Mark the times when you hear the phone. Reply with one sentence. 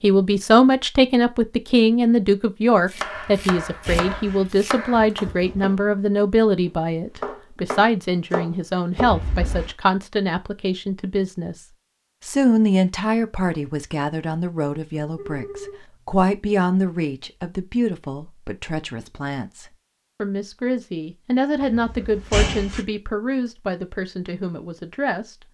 You can hear the phone from 15.2 to 15.8 s.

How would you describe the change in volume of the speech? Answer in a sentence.
The loudness of the speech goes down.